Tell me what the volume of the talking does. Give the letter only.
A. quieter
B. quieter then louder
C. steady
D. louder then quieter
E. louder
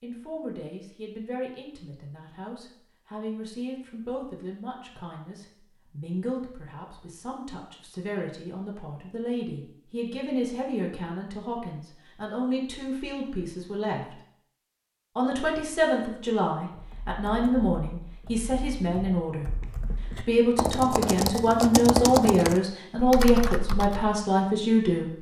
E.